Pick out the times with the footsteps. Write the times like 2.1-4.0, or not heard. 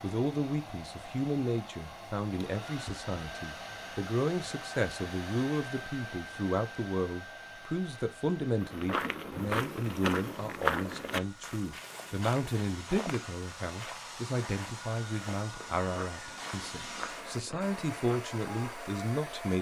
8.6-18.2.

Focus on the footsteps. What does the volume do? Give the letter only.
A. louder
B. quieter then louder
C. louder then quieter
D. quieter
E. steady
D.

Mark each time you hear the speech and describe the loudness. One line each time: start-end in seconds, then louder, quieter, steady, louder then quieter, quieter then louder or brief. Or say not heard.
0.0-19.5 steady.